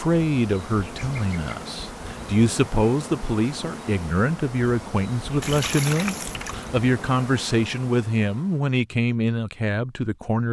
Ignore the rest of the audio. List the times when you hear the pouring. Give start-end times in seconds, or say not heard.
5.4-6.7.